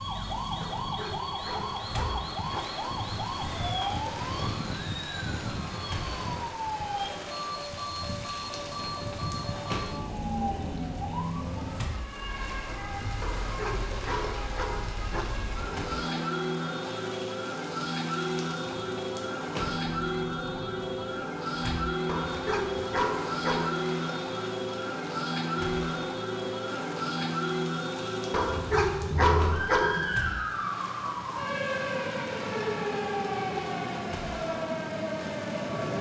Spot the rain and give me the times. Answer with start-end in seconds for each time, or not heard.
0.0-35.9.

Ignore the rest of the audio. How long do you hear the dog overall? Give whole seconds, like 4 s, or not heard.
8 s.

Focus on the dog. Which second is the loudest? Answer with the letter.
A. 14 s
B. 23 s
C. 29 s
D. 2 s
C.